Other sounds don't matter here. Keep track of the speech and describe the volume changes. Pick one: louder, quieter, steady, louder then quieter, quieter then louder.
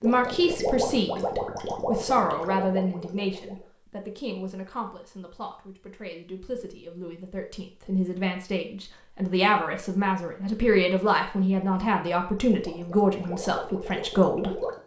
quieter then louder.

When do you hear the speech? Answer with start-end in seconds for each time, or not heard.
0.0-14.6.